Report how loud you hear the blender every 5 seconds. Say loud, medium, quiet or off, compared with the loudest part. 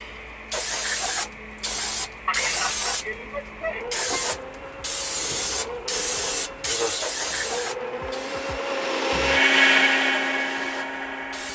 quiet, loud, loud.